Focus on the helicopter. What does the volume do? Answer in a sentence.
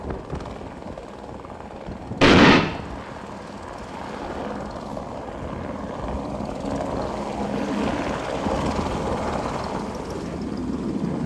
The loudness of the helicopter goes up.